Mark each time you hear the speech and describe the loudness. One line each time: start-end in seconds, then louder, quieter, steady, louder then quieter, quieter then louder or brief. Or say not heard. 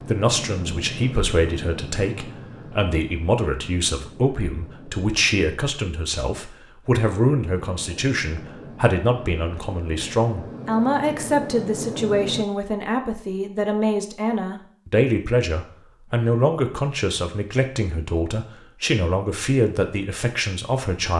0.0-21.1 steady.